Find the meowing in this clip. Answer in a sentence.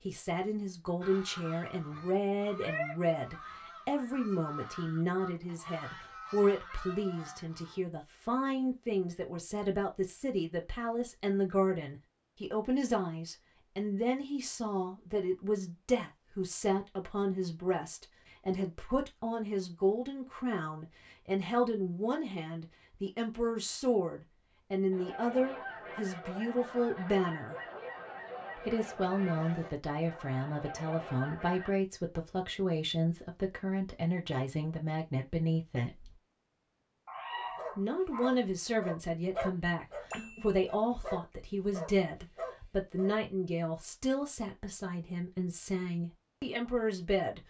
You can hear the meowing from 6.7 to 7.4 s and from 37.0 to 38.4 s.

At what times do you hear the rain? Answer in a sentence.
The rain can't be heard in this clip.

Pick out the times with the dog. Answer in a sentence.
The dog can be heard from 37.5 to 43.1 s.